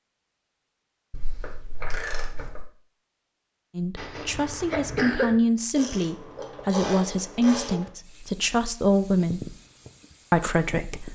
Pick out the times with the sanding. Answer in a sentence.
You can't hear the sanding here.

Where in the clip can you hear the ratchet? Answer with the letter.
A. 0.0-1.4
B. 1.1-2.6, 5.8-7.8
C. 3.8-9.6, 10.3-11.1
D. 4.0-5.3
B.